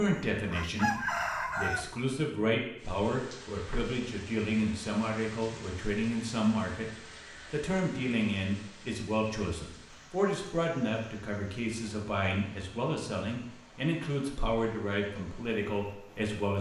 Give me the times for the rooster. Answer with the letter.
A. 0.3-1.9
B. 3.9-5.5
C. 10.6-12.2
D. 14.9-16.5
A.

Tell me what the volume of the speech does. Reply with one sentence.
The volume of the speech stays about the same.